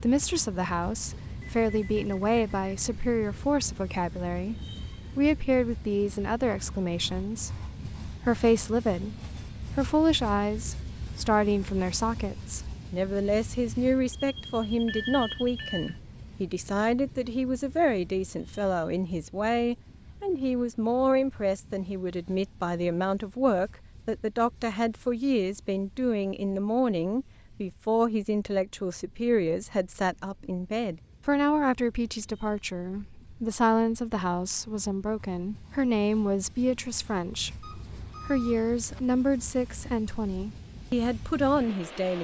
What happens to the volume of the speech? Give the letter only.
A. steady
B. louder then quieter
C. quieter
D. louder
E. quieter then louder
A.